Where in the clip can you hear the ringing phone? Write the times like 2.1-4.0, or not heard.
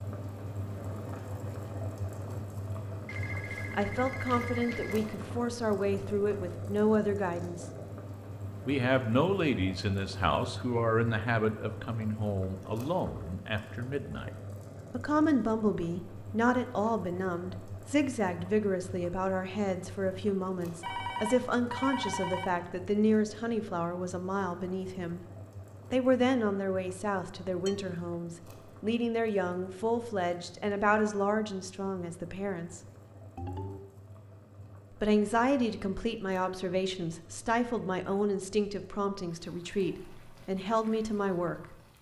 3.0-5.1, 20.8-22.5, 33.4-33.8.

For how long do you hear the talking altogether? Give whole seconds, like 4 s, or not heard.
34 s.